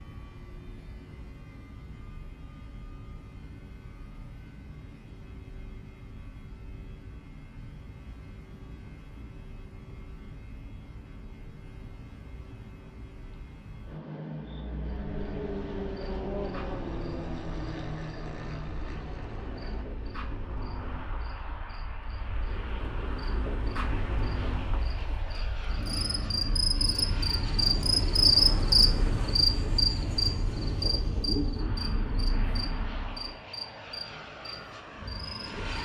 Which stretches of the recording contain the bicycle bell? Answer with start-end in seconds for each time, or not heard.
not heard.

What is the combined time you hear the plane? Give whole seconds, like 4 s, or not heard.
36 s.